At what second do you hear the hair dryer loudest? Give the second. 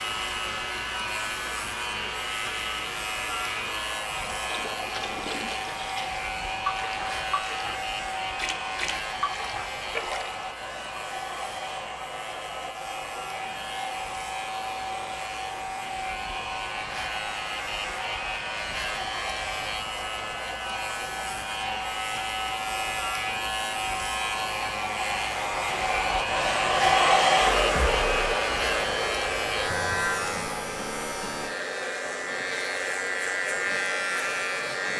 27 s.